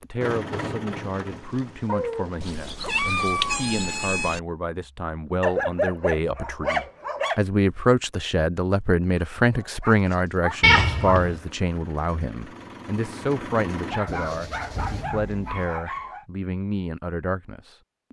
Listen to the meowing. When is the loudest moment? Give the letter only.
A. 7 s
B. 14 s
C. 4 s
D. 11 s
D.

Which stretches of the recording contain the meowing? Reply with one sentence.
You can hear the meowing from 2.4 to 4.4 s and from 10.6 to 11.4 s.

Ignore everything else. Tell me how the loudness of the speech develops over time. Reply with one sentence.
The loudness of the speech goes up, then down.